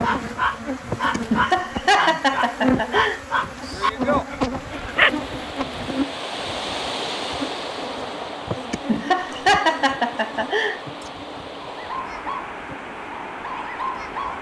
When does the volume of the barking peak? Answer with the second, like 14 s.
5 s.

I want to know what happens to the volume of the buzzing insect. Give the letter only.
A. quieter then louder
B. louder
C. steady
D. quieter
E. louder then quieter
D.